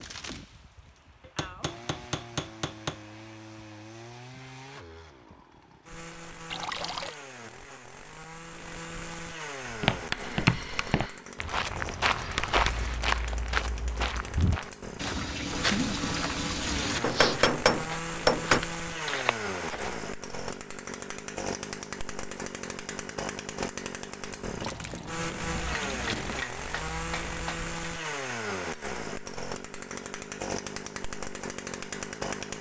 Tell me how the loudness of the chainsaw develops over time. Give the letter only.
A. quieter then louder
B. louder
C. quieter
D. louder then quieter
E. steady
B.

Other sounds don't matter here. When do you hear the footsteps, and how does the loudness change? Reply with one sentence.
You can hear the footsteps from 9.7 to 19.9 s, getting quieter.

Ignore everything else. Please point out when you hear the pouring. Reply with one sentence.
The pouring can be heard from 6.5 to 7.2 s, from 14.9 to 17.0 s and from 24.6 to 26.4 s.